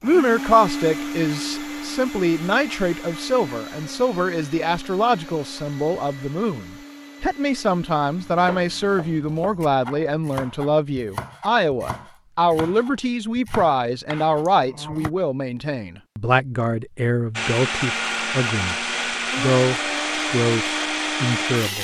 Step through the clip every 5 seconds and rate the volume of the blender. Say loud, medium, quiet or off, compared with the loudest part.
medium, quiet, off, loud, loud.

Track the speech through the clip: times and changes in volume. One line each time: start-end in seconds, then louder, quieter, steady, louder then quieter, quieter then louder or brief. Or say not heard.
0.0-21.8 steady.